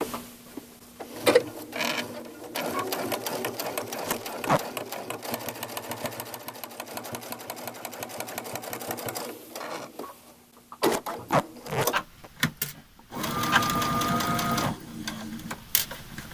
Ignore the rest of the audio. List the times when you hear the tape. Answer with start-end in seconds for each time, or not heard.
4.0-4.6, 10.8-12.3.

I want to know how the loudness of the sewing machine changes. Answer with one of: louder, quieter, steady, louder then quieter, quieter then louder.
quieter then louder.